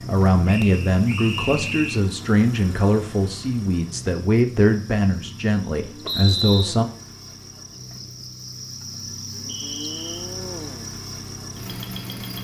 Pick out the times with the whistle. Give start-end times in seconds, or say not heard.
0.5-2.0, 6.0-6.8, 9.4-10.3.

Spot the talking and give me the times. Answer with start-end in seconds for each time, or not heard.
0.1-6.8.